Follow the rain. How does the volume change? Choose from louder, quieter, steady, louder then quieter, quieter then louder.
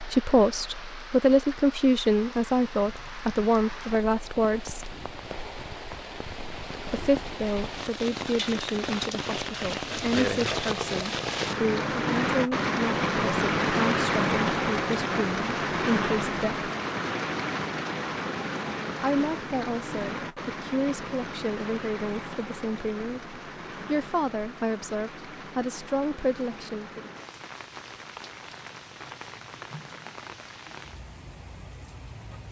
louder then quieter.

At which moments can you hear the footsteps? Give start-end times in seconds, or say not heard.
not heard.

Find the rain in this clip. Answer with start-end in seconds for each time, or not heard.
0.0-32.4.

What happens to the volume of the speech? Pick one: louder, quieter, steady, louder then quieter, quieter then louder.
quieter.